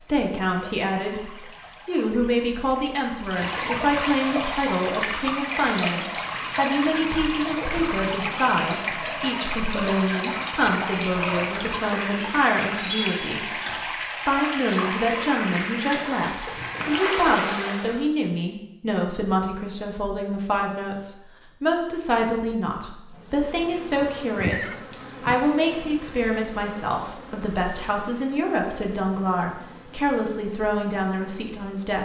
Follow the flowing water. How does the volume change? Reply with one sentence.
The loudness of the flowing water goes up.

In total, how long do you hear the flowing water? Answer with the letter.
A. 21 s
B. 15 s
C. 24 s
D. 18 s
D.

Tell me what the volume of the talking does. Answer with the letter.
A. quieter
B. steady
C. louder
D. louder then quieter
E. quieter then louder
B.